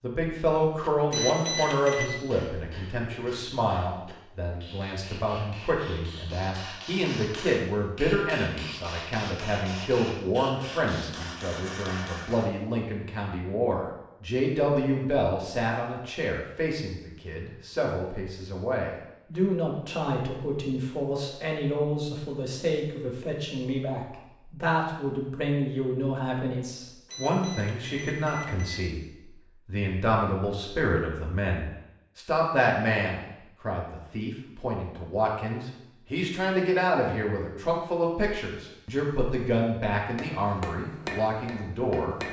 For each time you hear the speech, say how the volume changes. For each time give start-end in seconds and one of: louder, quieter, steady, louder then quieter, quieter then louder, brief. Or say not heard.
0.0-29.0 steady
29.6-42.1 steady.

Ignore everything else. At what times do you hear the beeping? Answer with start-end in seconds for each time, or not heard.
1.1-2.1, 27.1-28.9.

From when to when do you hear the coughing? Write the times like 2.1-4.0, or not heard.
not heard.